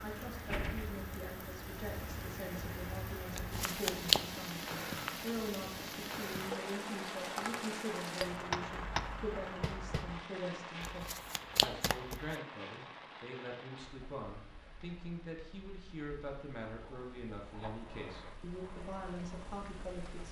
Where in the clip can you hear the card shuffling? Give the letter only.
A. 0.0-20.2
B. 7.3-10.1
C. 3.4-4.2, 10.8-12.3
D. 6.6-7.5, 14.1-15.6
C.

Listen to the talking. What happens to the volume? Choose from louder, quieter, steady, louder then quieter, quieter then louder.
steady.